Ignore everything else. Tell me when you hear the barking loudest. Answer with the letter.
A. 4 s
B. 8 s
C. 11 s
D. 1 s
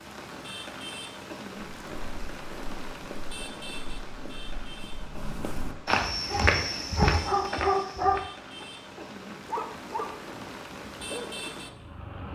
B.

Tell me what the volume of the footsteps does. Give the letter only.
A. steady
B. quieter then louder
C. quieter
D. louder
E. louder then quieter
D.